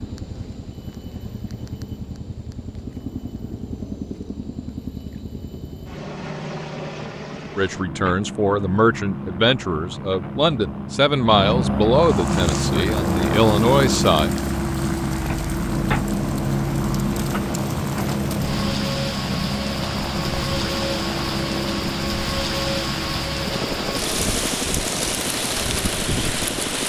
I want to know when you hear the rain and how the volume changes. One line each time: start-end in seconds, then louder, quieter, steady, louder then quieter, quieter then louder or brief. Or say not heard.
11.9-26.8 louder.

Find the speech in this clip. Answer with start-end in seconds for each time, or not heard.
7.5-14.3.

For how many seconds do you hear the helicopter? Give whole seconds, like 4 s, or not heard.
27 s.